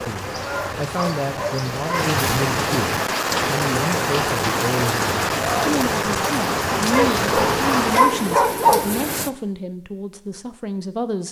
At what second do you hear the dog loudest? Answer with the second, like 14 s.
9 s.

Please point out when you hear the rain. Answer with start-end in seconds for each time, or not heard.
0.0-9.3.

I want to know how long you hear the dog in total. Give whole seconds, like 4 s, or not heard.
4 s.